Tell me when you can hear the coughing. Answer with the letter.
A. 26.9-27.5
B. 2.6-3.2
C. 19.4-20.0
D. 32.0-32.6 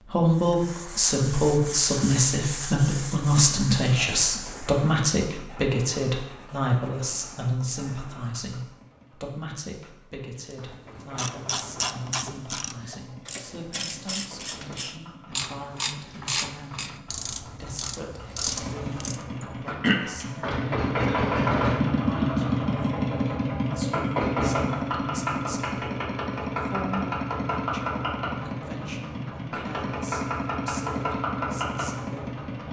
C.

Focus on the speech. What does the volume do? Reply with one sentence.
The loudness of the speech goes down.